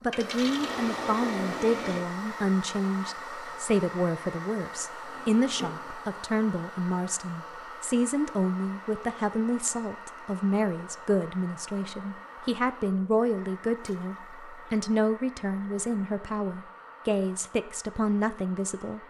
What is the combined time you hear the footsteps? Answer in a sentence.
You can't hear the footsteps here.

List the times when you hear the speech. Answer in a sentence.
You can hear the speech from 0.0 to 19.0 s.